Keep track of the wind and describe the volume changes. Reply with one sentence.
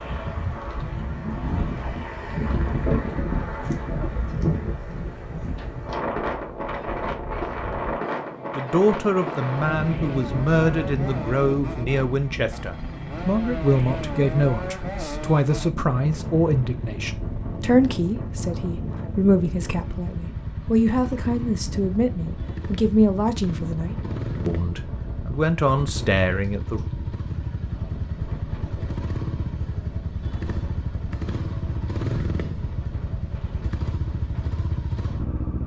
The loudness of the wind goes down.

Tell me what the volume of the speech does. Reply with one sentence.
The volume of the speech stays about the same.